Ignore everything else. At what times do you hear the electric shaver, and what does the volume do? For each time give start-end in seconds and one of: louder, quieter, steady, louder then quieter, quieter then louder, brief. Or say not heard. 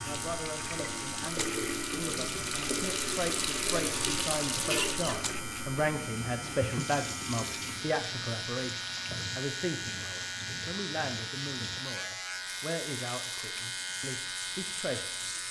0.0-15.4 steady.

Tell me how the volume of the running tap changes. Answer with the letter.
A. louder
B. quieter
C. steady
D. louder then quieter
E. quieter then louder
B.